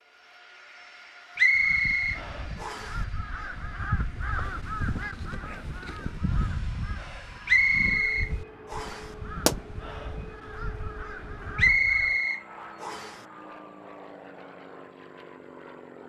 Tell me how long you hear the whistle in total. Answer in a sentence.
You can hear the whistle for 5 seconds altogether.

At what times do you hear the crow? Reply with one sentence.
You can hear the crow from 1.6 to 12.2 s.